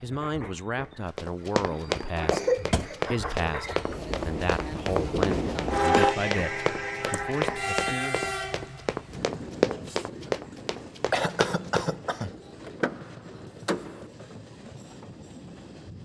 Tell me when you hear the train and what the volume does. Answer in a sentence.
You can hear the train from 0.0 to 16.0 s, getting louder then quieter.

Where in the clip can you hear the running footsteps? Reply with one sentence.
The running footsteps can be heard from 0.9 to 11.9 s.